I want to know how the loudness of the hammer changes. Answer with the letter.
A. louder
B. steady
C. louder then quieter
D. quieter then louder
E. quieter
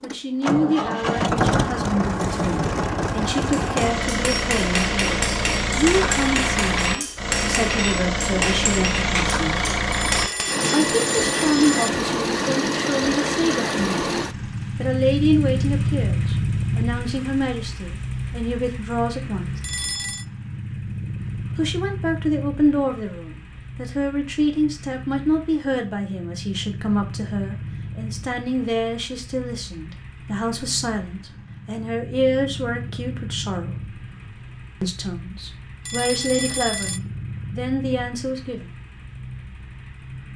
B.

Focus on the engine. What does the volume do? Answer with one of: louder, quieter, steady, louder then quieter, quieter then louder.
quieter.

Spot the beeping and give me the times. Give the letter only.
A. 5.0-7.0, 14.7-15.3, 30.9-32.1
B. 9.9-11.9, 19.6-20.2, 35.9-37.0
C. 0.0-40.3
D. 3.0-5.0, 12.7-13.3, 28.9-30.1
B.